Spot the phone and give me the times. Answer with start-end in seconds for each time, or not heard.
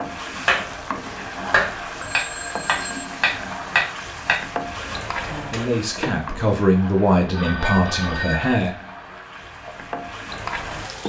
2.0-3.1, 7.3-8.6.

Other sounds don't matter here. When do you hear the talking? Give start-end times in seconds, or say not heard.
5.5-8.8.